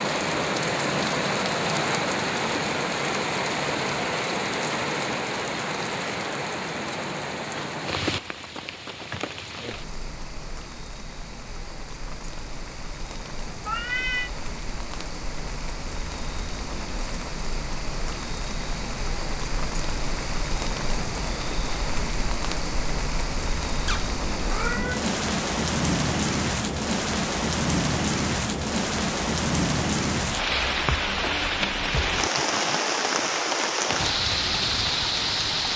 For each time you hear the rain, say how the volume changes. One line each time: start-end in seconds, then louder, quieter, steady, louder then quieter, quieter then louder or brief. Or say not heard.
0.0-35.7 quieter then louder.